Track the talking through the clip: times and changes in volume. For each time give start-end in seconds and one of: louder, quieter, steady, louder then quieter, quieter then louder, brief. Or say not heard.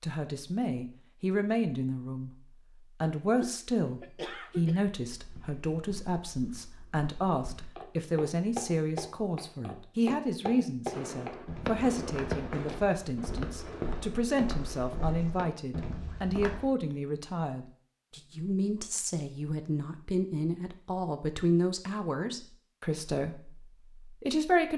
0.0-2.3 brief
3.0-24.7 steady.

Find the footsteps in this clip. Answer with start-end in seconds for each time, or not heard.
5.1-16.7.